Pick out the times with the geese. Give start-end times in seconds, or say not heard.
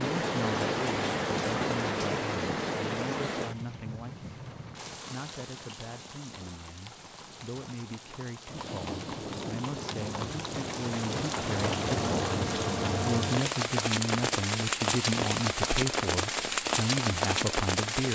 not heard.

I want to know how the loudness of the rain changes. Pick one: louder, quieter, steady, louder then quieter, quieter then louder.
quieter then louder.